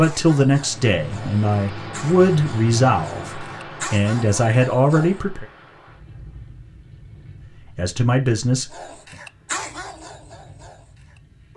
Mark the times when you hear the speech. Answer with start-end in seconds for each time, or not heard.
0.0-5.5, 7.8-8.7.